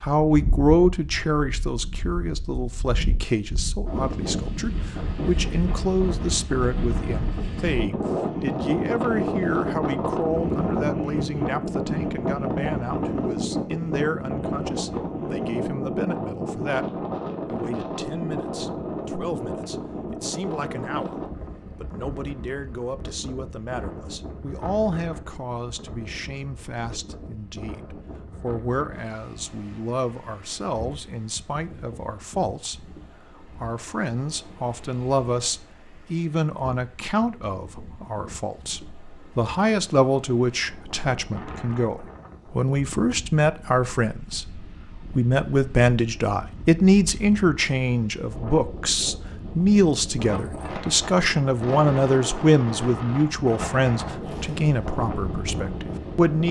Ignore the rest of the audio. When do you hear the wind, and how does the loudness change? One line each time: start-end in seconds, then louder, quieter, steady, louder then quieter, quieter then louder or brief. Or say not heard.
0.2-56.4 quieter then louder.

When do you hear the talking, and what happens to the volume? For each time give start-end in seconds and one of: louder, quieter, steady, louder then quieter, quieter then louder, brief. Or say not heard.
0.0-16.9 quieter
17.4-56.4 louder.